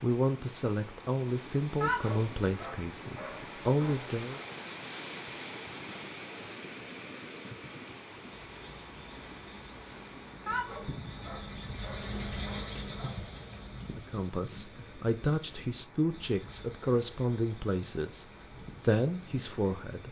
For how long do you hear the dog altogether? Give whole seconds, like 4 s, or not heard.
5 s.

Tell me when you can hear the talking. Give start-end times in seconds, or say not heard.
0.0-4.4, 13.9-20.0.